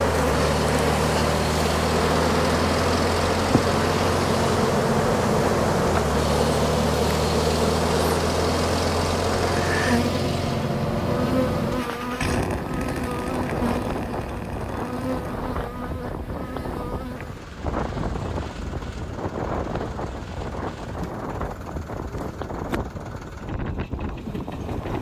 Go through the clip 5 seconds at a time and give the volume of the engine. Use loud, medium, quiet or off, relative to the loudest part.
loud, loud, loud, quiet, quiet.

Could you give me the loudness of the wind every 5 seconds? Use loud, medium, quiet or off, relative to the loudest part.
off, off, loud, loud, loud.